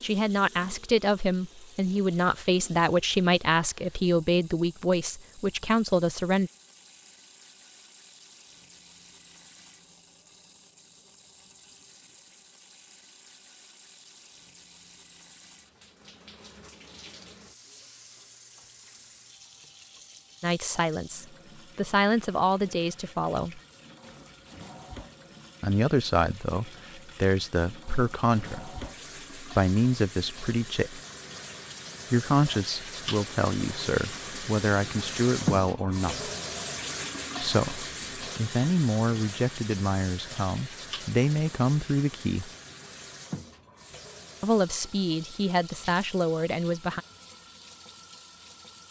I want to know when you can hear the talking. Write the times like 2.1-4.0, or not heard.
0.0-6.5, 20.4-23.6, 25.6-31.0, 32.1-36.3, 37.4-42.5, 44.4-47.0.